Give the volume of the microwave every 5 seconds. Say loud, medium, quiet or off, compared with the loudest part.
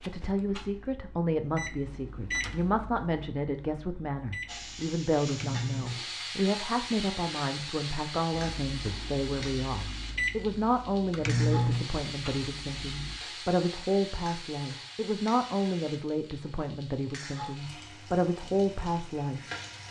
medium, medium, loud, off.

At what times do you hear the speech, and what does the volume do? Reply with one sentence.
You can hear the speech from 0.0 to 19.4 s, at a steady volume.